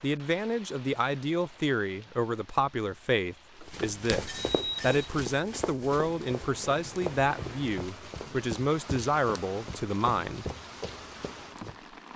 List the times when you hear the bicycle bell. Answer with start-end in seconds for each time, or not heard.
3.6-5.1.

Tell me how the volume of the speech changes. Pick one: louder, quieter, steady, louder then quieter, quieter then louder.
steady.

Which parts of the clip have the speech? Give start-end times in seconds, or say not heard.
0.0-10.5.